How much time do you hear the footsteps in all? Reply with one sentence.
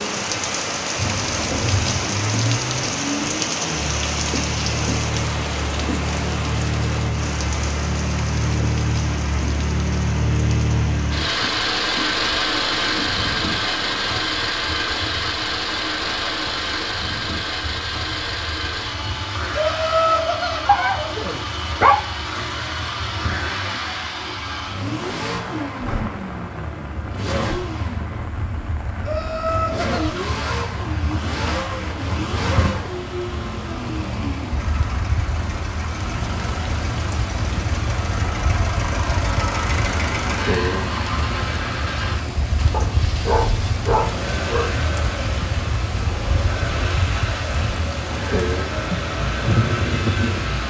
The footsteps can't be heard in this clip.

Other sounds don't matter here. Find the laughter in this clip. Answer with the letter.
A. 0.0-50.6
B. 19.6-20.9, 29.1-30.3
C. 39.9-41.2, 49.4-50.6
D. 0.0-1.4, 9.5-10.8
B.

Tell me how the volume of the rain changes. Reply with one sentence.
The volume of the rain goes down, then up.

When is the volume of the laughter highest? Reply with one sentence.
The loudest moment of the laughter is at 20 seconds.